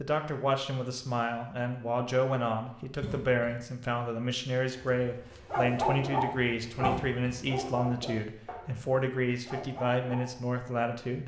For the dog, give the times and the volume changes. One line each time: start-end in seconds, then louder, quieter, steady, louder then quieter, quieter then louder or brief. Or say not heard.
4.9-10.4 quieter.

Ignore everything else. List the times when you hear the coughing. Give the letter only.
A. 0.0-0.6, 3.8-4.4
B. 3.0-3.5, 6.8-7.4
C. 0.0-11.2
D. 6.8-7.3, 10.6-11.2
B.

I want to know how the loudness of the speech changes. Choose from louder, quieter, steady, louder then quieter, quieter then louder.
steady.